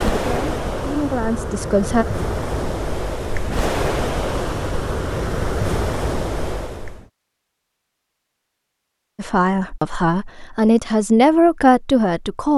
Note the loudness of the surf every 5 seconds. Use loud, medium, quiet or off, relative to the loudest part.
loud, loud, off.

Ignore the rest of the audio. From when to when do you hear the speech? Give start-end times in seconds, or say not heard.
0.1-2.0, 9.2-12.5.